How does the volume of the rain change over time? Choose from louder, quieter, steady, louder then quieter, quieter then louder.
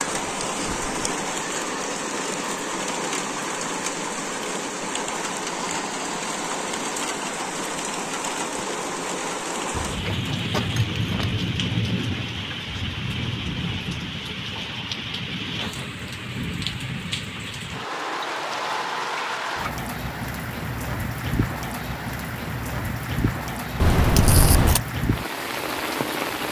steady.